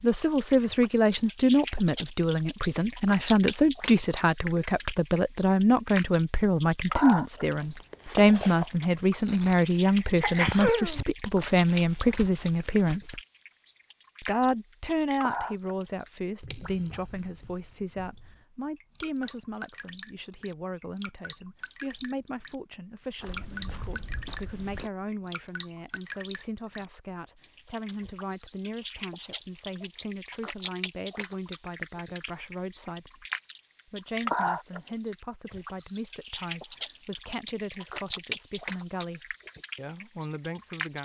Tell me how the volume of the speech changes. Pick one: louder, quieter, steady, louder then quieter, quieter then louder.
quieter.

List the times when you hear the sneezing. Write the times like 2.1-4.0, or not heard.
9.4-11.1.